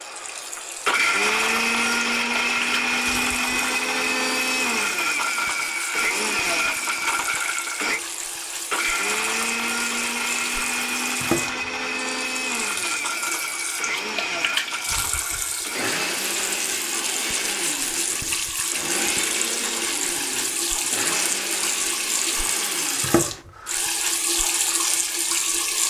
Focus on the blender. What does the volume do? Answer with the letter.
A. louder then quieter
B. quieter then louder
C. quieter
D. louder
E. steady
C.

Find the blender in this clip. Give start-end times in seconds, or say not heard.
0.0-23.4.